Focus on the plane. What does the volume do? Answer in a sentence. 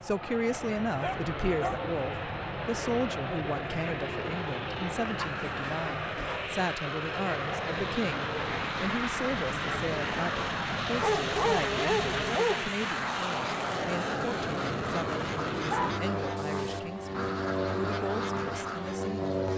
The loudness of the plane stays about the same.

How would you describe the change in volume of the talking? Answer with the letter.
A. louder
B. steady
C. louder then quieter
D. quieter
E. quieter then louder
D.